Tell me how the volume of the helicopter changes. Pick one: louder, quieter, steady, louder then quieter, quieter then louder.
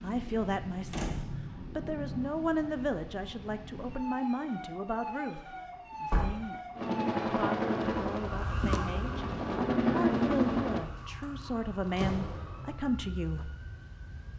quieter then louder.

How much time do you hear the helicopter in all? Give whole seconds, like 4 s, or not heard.
4 s.